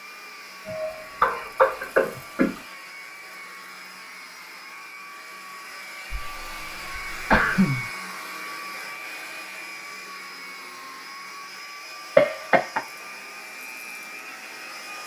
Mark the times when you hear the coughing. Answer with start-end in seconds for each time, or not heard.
0.7-2.6, 6.1-7.8, 12.2-12.8.